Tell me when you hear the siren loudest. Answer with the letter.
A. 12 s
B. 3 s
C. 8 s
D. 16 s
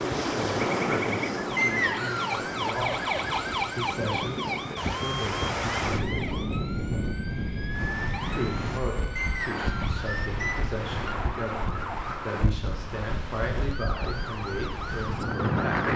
B.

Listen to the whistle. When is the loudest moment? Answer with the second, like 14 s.
2 s.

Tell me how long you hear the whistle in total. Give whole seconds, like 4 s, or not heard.
2 s.